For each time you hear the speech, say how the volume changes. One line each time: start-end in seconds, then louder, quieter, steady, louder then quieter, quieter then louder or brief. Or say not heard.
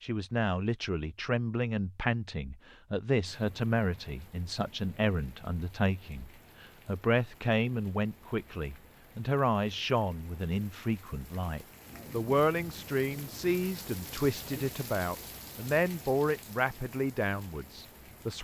0.0-18.3 steady.